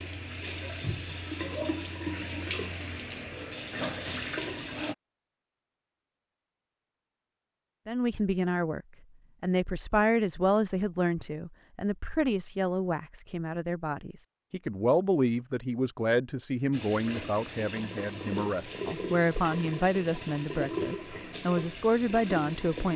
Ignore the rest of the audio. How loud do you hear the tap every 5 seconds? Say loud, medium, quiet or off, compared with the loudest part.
loud, off, off, loud, loud.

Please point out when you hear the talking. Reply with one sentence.
The talking can be heard from 7.8 to 22.9 s.